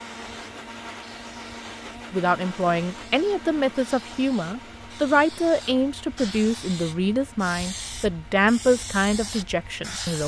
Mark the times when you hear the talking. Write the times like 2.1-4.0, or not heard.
2.1-10.2.